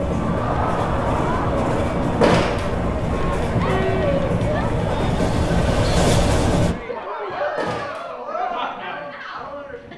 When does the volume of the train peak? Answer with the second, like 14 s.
6 s.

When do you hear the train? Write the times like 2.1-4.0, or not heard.
0.0-6.8.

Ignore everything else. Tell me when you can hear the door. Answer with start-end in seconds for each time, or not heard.
2.2-2.8, 7.5-8.1.